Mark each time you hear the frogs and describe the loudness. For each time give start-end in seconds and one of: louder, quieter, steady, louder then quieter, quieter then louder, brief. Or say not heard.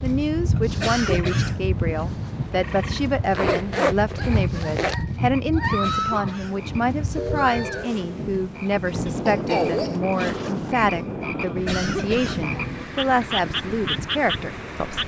0.0-15.0 louder.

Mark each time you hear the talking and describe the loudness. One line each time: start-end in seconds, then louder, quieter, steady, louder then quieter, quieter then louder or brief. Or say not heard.
0.0-15.0 steady.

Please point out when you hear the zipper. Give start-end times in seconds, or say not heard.
3.3-5.0, 8.8-10.8.